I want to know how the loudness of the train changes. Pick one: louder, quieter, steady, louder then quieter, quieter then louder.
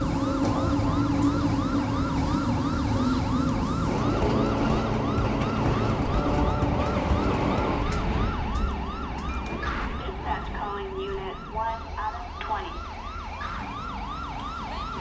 quieter.